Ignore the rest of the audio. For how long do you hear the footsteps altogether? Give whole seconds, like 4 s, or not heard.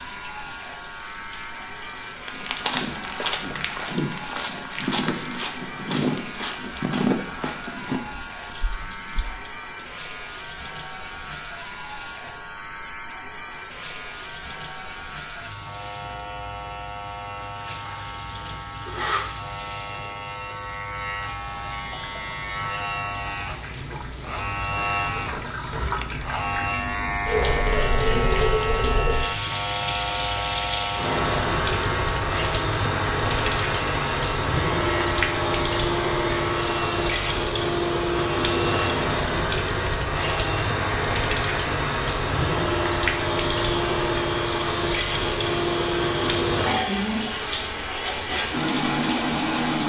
7 s.